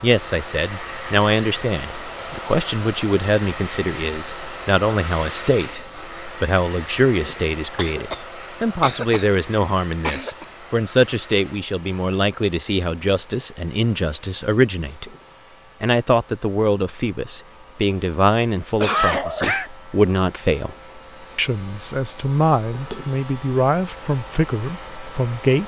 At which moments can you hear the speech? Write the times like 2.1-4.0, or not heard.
0.0-15.1, 15.8-20.8, 21.4-25.6.